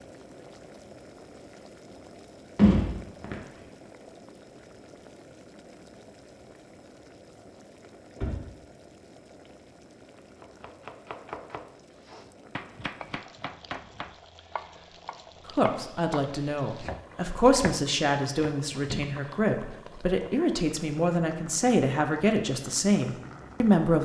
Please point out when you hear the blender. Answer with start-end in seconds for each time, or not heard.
not heard.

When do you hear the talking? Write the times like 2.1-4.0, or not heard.
15.5-24.0.